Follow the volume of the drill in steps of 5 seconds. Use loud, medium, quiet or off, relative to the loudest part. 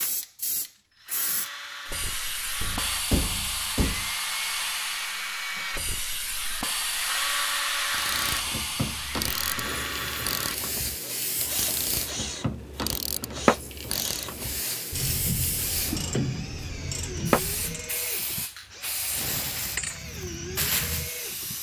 medium, loud, medium, medium, medium.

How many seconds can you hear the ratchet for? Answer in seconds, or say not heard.
10 s.